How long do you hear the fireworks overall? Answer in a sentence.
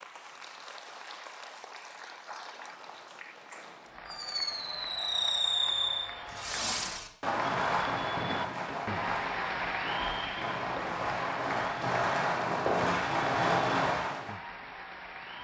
You can hear the fireworks for 10 seconds altogether.